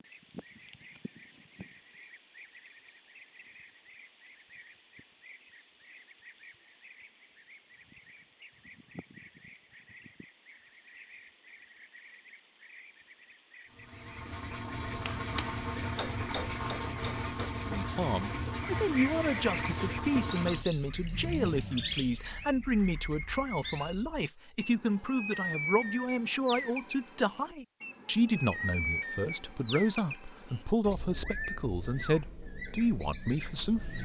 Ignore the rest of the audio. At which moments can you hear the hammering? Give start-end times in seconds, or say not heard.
14.8-17.6.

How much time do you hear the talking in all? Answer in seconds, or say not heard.
16 s.